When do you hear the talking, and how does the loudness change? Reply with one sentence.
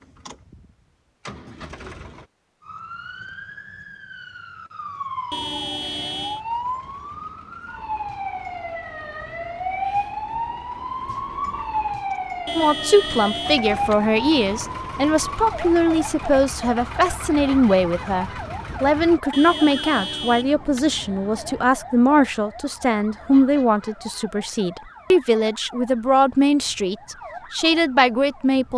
The talking can be heard from 12.6 to 28.7 s, at a steady volume.